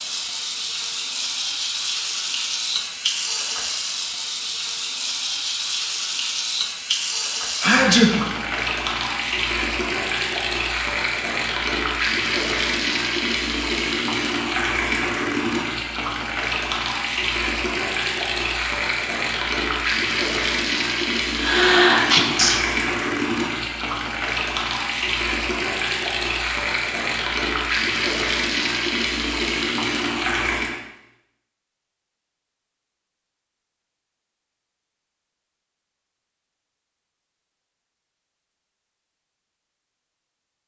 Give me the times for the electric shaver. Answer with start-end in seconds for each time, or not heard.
not heard.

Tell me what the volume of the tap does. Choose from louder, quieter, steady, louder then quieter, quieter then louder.
steady.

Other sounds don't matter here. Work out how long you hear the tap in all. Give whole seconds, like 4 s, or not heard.
31 s.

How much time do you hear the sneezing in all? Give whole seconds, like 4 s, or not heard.
2 s.